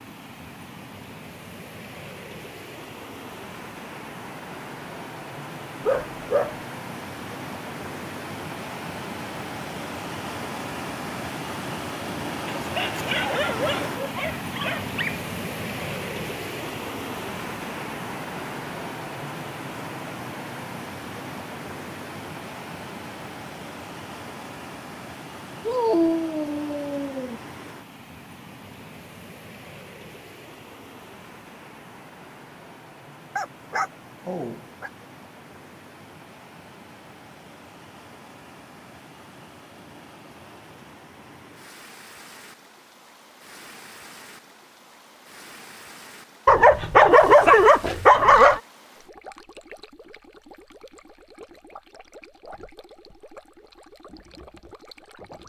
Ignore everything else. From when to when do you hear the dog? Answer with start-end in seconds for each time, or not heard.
5.8-6.6, 12.4-15.2, 25.6-27.4, 33.4-34.9, 46.5-48.6.